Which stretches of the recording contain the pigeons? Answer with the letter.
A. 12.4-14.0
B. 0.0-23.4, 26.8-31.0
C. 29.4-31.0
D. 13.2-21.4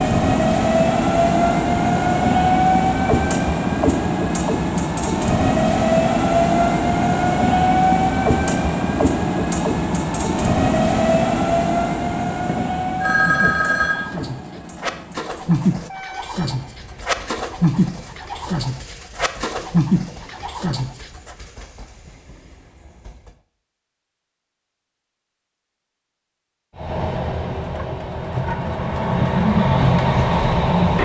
D.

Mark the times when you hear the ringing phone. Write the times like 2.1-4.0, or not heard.
12.4-14.0.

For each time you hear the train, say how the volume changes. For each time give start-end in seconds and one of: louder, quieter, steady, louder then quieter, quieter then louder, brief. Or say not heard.
0.0-23.4 quieter
26.8-31.0 louder.